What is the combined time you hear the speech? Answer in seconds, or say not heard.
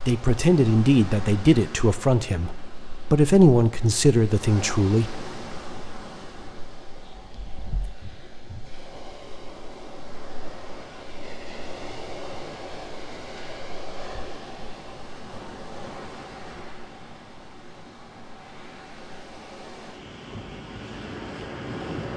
5 s.